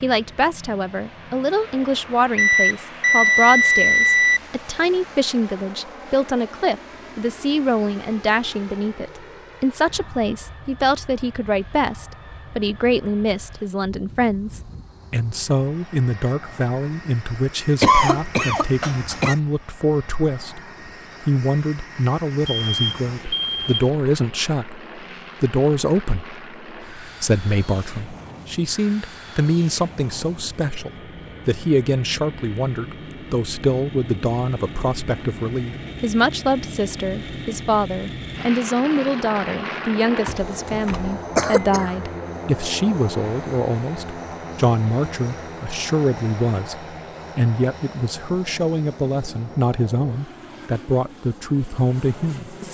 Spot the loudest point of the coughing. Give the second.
18 s.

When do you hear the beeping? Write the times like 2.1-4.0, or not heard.
2.4-4.4, 22.4-23.9, 40.9-41.6.